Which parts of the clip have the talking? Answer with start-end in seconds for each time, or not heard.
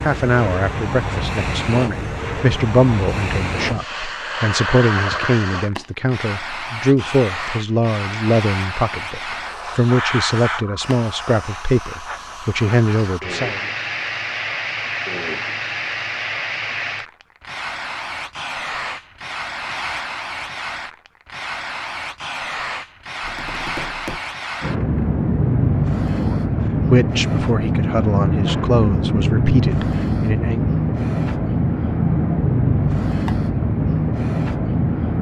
0.0-13.6, 26.1-30.7.